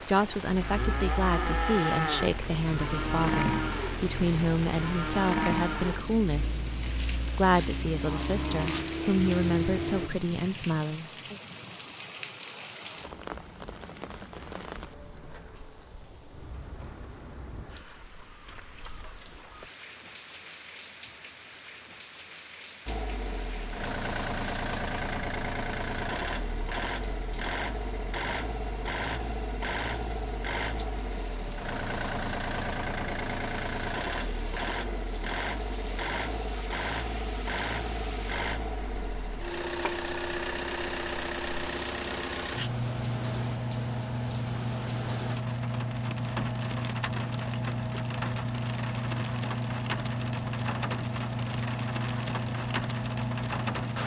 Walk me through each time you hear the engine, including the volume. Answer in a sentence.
You can hear the engine from 0.0 to 10.1 s, getting louder; and from 22.9 to 54.0 s, at a steady volume.